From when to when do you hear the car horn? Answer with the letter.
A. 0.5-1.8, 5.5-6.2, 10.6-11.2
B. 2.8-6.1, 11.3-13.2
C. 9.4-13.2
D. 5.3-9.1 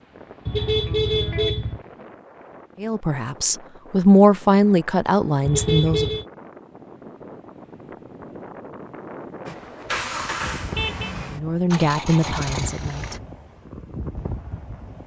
A.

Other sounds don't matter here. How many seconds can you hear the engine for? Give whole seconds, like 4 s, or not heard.
4 s.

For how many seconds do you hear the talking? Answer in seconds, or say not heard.
5 s.